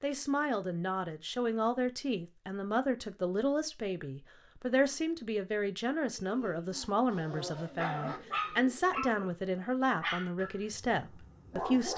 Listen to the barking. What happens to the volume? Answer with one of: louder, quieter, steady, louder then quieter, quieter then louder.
louder then quieter.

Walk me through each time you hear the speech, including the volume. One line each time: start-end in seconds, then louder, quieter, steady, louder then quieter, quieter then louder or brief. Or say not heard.
0.0-11.9 steady.